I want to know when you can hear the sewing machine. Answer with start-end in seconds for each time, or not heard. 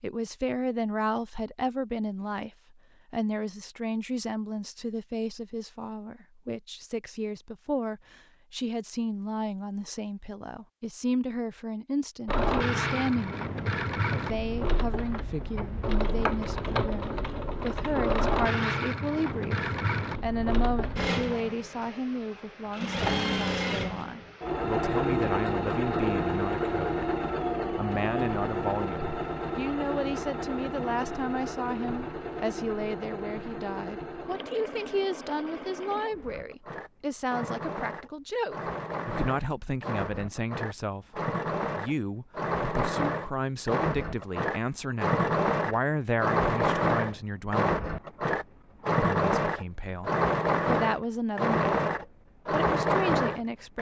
12.2-53.7.